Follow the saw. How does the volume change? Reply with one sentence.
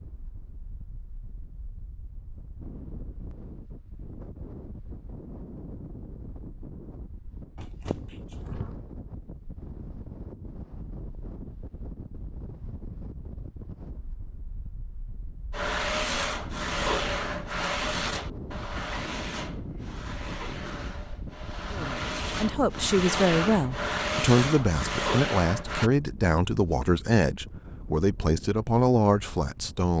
The loudness of the saw goes down, then up.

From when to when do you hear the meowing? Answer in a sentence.
You can hear the meowing from 7.5 to 8.8 s.